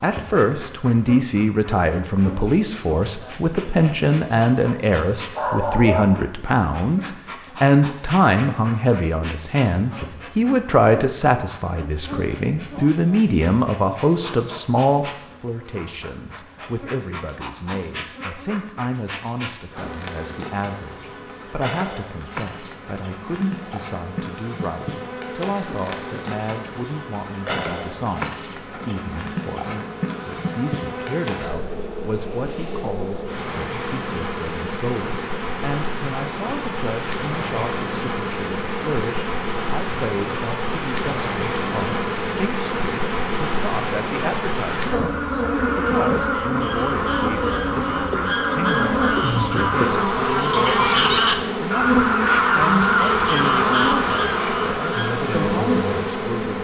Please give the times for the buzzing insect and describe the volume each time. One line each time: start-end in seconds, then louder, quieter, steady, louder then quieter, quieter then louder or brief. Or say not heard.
0.0-56.5 louder.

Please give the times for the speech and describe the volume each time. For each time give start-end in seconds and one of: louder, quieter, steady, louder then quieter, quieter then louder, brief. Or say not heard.
0.0-56.5 quieter.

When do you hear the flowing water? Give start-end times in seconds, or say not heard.
not heard.